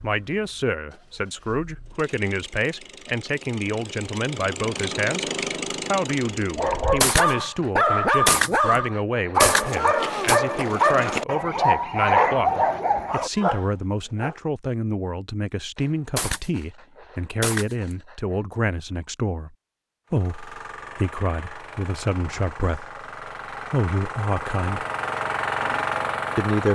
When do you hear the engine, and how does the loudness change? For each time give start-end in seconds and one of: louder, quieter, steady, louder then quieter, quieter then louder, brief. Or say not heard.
0.0-7.1 louder
20.1-26.7 louder.